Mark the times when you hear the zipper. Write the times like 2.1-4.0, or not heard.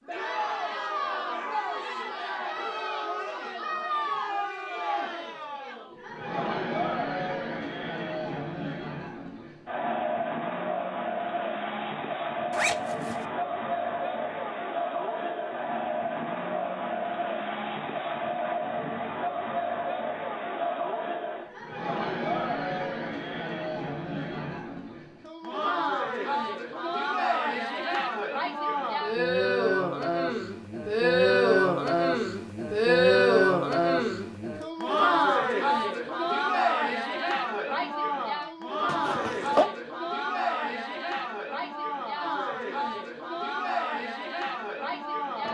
12.5-13.2, 38.9-39.6.